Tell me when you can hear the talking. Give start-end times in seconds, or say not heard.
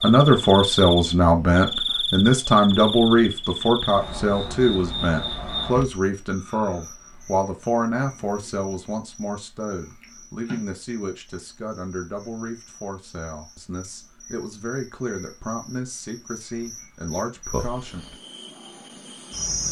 0.0-18.1.